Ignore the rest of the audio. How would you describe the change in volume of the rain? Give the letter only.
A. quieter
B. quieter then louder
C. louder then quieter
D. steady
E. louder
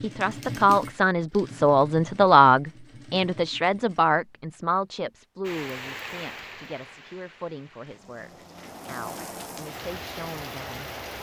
B.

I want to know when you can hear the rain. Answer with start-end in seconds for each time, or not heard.
5.4-11.1.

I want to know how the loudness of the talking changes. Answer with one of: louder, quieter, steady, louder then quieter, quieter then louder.
quieter.